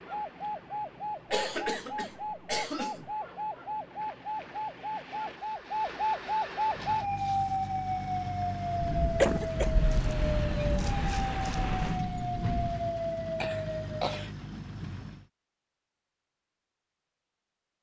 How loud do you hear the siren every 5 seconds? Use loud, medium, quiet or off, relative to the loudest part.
medium, loud, loud, off.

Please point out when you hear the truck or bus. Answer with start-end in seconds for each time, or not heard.
6.6-15.3.